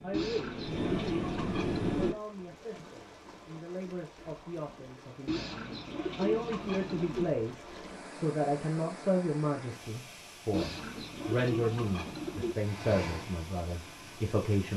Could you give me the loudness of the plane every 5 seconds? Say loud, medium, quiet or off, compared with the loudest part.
loud, off, medium.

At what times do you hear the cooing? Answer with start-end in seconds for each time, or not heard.
0.1-2.1, 5.2-7.3, 10.5-12.6.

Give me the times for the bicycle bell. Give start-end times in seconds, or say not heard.
not heard.